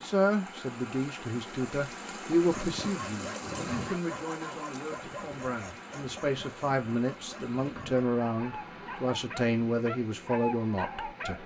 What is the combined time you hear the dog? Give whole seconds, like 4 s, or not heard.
9 s.